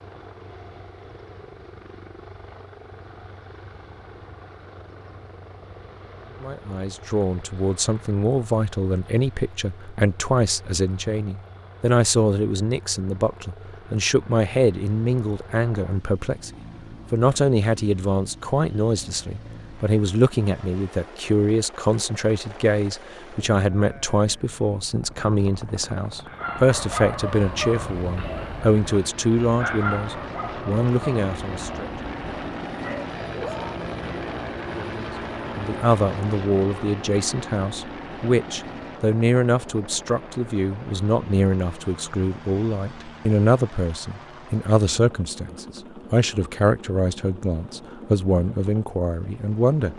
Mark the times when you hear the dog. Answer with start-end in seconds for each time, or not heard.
26.2-33.9.